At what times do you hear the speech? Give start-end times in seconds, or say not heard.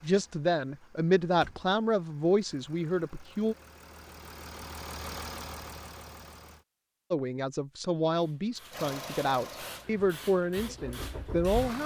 0.0-3.5, 7.1-11.8.